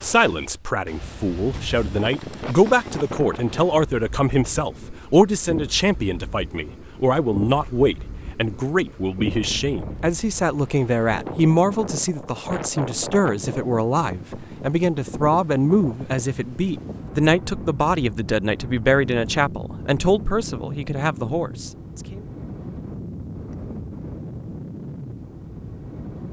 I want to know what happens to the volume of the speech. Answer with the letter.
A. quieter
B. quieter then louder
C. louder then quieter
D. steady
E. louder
D.